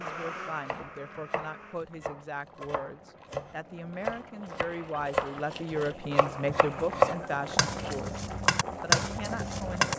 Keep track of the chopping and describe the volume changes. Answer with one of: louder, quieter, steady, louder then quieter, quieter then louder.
louder.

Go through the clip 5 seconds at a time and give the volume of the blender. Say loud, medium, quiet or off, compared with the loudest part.
loud, off.